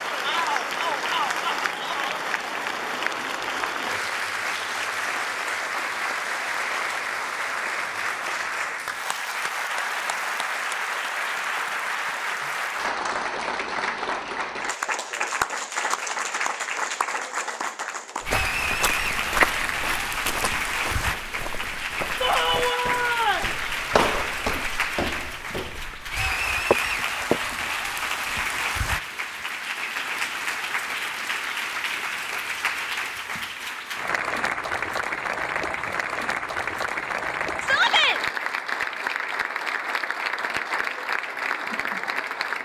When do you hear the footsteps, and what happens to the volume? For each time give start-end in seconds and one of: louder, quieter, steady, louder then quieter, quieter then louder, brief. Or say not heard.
18.2-27.6 quieter then louder.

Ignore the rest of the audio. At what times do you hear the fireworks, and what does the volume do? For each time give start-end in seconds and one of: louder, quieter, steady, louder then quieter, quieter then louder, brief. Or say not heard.
not heard.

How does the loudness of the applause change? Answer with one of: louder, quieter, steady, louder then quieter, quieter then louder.
steady.